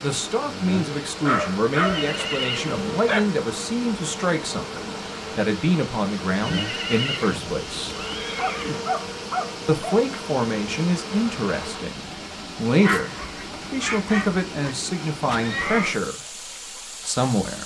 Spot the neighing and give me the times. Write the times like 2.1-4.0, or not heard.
1.8-2.9, 6.4-8.8, 15.2-16.0.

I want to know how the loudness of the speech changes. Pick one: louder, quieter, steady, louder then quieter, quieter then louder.
steady.